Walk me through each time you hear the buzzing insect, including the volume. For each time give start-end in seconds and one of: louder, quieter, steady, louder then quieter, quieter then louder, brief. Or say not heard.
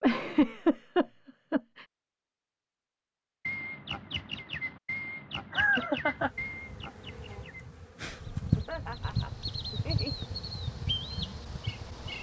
6.0-12.1 louder then quieter.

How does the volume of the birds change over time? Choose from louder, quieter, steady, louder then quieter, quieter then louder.
quieter then louder.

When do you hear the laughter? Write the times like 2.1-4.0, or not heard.
0.0-1.9, 5.5-6.3, 8.6-10.2.